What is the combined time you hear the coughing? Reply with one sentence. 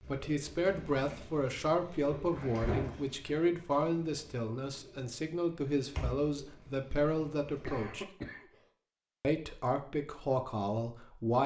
You can hear the coughing for 2 seconds altogether.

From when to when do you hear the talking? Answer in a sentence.
The talking can be heard from 0.1 to 8.1 s and from 9.2 to 11.4 s.